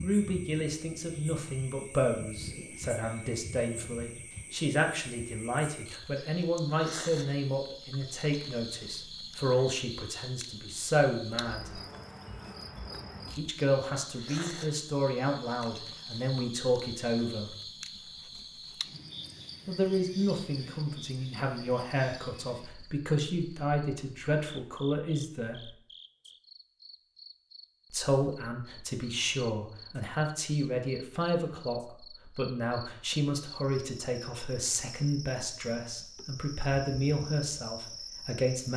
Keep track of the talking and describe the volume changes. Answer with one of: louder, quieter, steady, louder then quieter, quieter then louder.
steady.